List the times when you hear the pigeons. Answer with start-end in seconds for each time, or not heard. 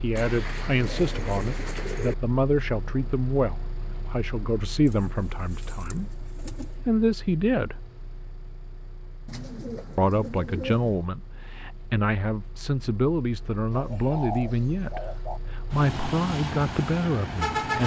0.1-2.1, 4.8-6.8, 9.2-11.1, 13.7-15.4.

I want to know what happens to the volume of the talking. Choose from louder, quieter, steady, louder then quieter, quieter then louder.
steady.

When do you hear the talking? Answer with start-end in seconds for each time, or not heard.
0.0-7.8, 9.9-17.8.